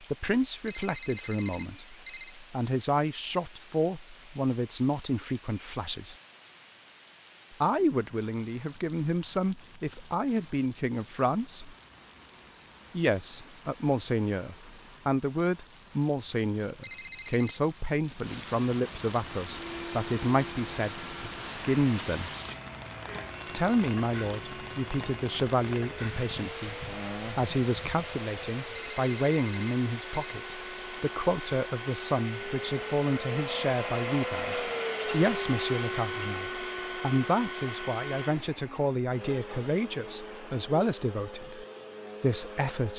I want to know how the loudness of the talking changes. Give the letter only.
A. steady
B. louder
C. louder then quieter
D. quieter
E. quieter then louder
A.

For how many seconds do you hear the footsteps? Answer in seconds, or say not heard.
not heard.